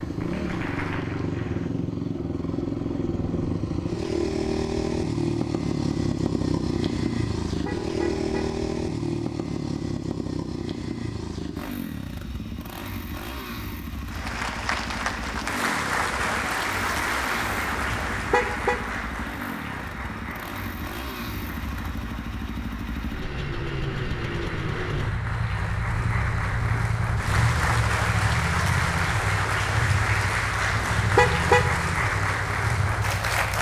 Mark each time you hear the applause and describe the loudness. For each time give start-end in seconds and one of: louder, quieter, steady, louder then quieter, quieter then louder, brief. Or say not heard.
0.0-1.8 brief
14.1-33.5 quieter then louder.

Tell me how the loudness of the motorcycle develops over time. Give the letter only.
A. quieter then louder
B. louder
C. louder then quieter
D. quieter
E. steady
A.